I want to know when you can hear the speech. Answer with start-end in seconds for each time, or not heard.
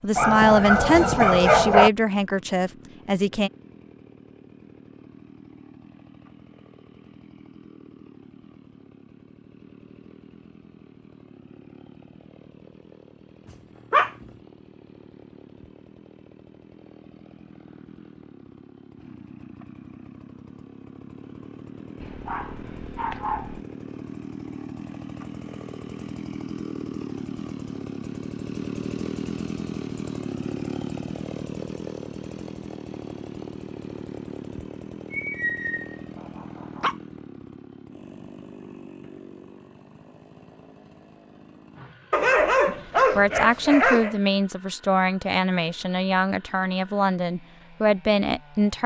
0.0-3.5, 42.6-48.8.